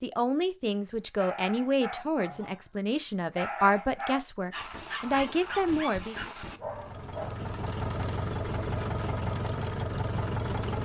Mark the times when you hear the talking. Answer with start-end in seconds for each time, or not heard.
0.0-6.3.